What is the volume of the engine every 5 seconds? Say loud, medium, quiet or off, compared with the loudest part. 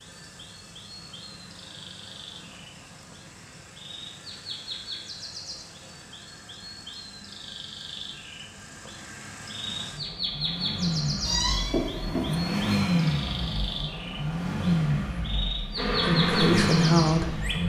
quiet, quiet, loud, loud.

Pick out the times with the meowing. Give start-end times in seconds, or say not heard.
11.2-12.8.